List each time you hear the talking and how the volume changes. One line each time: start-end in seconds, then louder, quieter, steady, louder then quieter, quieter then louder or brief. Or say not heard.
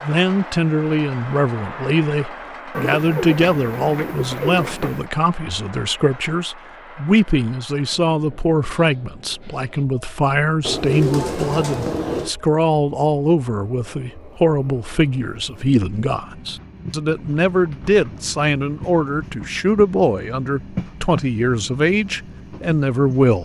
0.0-23.3 steady.